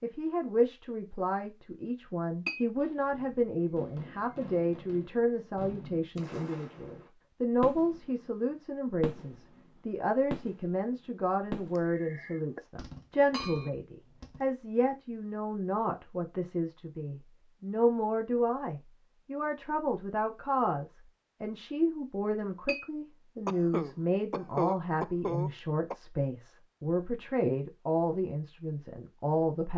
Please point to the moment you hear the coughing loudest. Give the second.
25 s.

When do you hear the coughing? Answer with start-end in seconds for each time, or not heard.
11.8-12.7, 23.4-25.9.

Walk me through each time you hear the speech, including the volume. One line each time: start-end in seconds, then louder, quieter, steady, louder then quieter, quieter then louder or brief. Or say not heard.
0.0-29.7 steady.